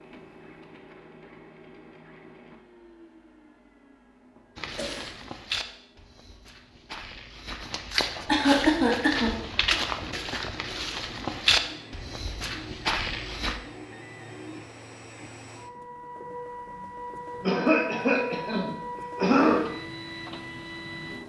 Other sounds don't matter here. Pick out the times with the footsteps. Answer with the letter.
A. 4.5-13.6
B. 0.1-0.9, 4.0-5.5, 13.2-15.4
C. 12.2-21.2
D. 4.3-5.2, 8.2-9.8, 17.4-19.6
A.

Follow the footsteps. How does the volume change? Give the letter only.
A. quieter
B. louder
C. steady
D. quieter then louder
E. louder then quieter
B.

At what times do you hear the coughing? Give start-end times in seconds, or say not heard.
4.3-5.2, 8.2-9.8, 17.4-19.6.